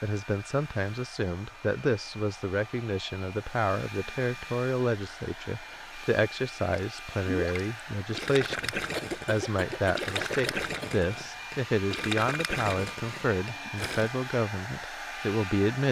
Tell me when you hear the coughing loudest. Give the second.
9 s.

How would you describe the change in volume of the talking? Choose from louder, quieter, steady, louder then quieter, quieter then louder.
steady.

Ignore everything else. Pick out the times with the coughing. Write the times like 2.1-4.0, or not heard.
8.9-10.9.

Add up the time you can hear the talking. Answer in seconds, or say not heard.
16 s.